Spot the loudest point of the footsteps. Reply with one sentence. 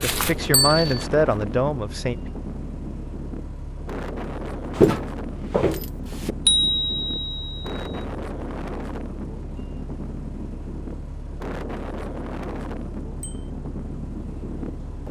The loudest moment of the footsteps is at 5 seconds.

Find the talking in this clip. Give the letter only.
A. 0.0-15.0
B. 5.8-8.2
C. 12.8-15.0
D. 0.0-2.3
D.